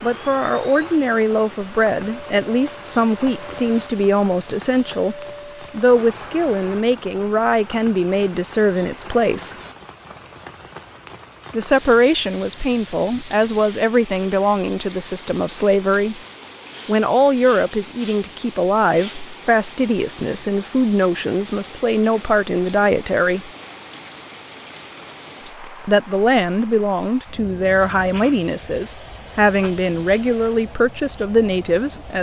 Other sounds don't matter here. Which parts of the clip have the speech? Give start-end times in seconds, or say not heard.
0.0-9.6, 11.5-16.2, 16.9-23.5, 25.9-32.1.